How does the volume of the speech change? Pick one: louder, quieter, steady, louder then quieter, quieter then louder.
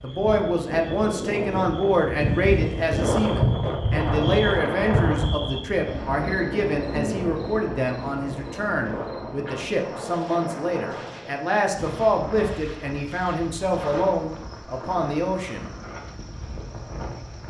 steady.